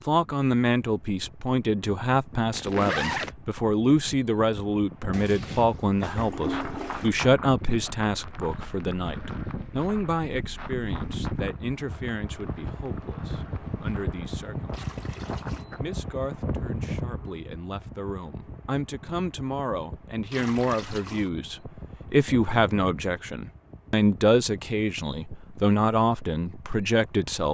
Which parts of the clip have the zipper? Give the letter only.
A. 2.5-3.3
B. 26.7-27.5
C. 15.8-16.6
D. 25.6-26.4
A.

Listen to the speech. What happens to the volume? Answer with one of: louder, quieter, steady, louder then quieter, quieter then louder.
quieter then louder.